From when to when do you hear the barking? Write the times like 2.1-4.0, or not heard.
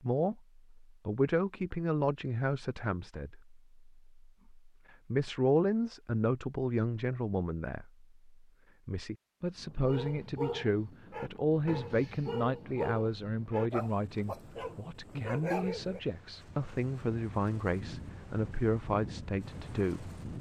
9.8-16.0.